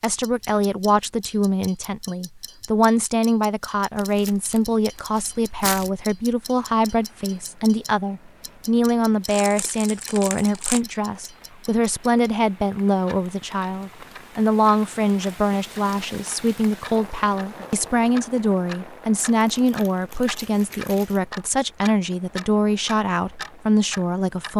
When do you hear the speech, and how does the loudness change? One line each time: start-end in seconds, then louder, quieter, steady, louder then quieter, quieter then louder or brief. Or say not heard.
0.0-24.5 steady.